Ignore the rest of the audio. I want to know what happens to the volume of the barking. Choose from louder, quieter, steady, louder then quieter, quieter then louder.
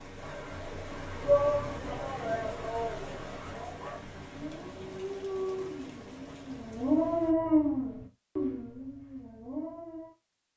louder then quieter.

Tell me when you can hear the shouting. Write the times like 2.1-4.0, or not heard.
1.2-3.2.